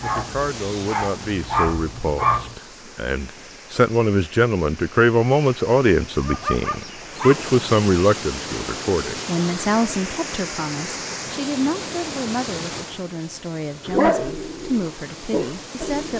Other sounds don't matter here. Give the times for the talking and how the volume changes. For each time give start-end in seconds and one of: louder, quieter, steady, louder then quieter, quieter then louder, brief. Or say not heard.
0.0-16.1 louder then quieter.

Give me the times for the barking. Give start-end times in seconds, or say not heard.
0.0-2.5, 6.2-7.5, 13.8-16.1.